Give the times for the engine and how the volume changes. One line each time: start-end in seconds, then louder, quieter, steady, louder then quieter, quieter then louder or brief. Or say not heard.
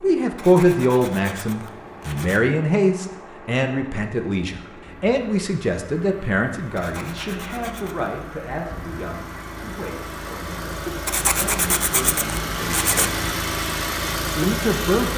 0.0-15.1 louder.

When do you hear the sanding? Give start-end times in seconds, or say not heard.
0.3-2.4, 6.8-8.2, 11.1-13.1.